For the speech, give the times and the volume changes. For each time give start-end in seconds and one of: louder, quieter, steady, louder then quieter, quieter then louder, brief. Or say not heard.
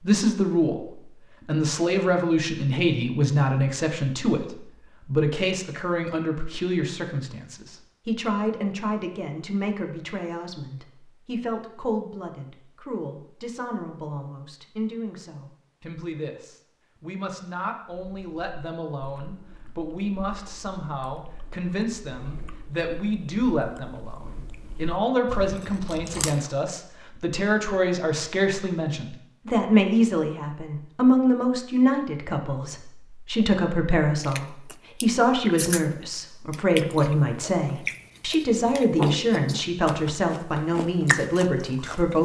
0.0-0.8 brief
1.4-42.1 quieter then louder.